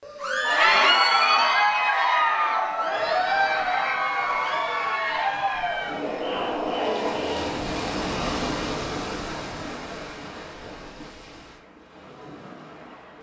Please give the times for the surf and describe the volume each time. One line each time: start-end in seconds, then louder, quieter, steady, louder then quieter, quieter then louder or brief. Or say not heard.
2.9-13.1 louder then quieter.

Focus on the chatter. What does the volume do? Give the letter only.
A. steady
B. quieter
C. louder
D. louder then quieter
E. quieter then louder
B.